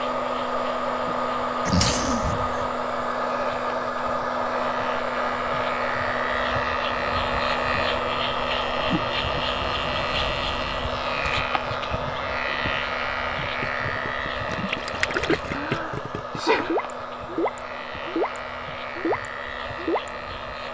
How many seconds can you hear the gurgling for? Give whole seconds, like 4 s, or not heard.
7 s.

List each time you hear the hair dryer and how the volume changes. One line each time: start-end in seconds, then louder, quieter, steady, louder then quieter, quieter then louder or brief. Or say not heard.
0.0-20.6 quieter.